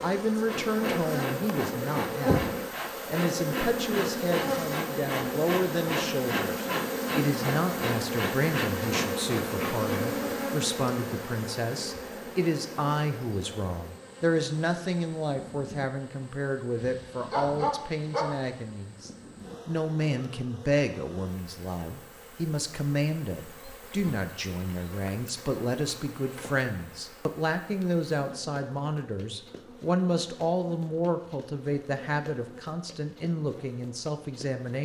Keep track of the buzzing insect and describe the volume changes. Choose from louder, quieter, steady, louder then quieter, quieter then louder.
quieter.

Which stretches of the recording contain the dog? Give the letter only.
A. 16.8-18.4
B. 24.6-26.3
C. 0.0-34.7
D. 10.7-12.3
A.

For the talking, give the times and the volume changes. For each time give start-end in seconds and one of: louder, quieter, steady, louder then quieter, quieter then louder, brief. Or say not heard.
0.0-34.7 steady.